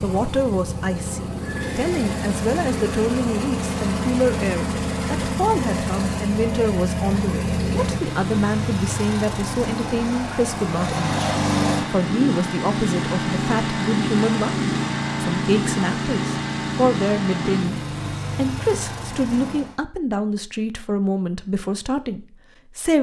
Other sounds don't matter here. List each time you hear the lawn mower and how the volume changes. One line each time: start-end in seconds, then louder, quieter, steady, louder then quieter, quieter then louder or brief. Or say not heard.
0.0-19.8 steady.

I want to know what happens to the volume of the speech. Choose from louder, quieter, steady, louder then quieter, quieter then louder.
steady.